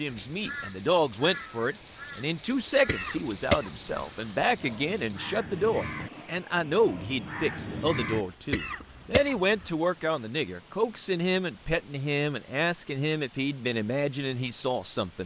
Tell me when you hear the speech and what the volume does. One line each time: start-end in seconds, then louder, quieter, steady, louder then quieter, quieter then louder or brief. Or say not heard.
0.0-15.2 steady.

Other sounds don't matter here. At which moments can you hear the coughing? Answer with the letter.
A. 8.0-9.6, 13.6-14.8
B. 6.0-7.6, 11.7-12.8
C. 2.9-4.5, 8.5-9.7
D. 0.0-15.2
C.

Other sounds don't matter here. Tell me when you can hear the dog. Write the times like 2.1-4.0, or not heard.
not heard.